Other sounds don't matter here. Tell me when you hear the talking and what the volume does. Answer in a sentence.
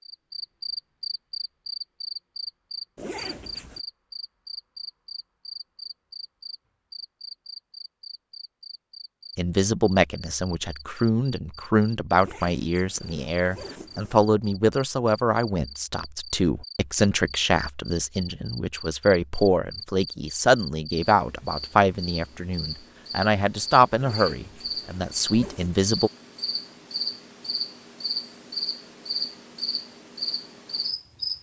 You can hear the talking from 9.3 to 26.1 s, at a steady volume.